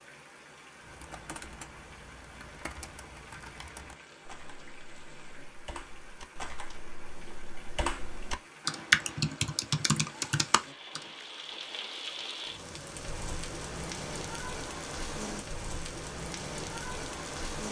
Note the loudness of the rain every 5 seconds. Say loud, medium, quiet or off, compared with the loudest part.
quiet, quiet, loud, loud.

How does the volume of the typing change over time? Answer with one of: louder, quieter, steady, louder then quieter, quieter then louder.
louder.